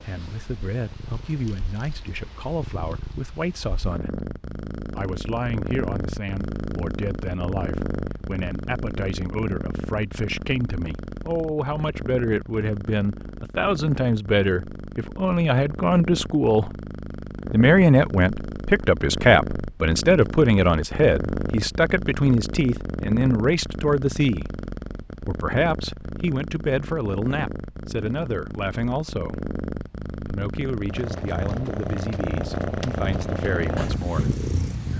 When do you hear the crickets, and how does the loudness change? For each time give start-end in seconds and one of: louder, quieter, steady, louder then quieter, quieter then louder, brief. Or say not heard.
not heard.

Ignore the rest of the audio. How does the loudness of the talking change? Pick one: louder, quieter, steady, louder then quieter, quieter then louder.
louder then quieter.